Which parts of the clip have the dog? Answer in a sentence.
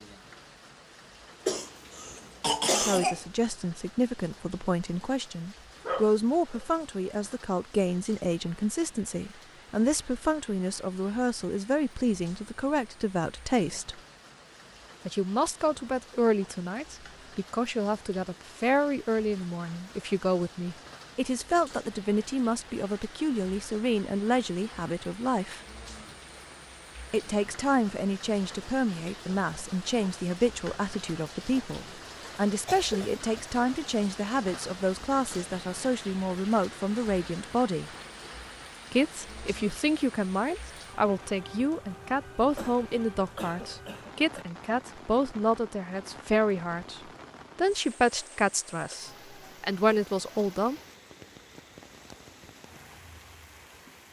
You can hear the dog from 5.8 to 6.7 s.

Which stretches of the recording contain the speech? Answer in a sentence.
You can hear the speech from 2.8 to 14.0 s, from 15.1 to 25.6 s, from 27.1 to 37.9 s and from 38.9 to 50.8 s.